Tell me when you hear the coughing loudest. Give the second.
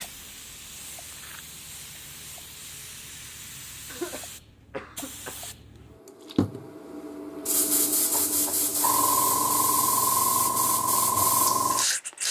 4 s.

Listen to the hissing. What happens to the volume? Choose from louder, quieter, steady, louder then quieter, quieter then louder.
louder.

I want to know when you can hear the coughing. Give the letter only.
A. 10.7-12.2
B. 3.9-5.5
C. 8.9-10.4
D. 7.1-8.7
B.